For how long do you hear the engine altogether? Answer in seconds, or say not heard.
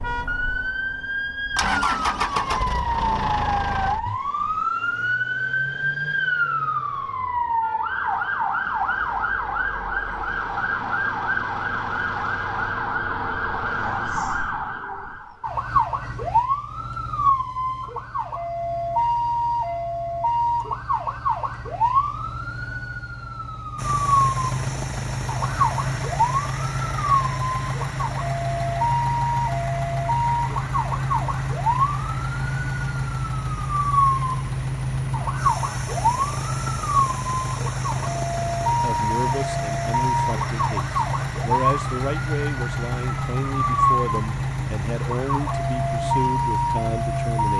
28 s.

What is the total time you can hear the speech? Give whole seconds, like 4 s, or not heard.
9 s.